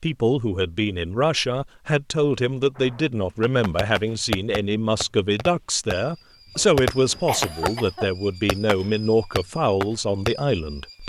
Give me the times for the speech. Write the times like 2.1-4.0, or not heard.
0.0-11.0.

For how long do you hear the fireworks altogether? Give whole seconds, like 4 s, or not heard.
8 s.